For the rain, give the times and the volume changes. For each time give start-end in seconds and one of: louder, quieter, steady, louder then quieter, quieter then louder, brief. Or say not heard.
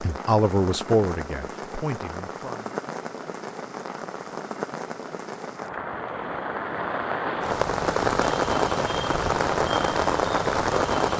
0.0-11.1 louder.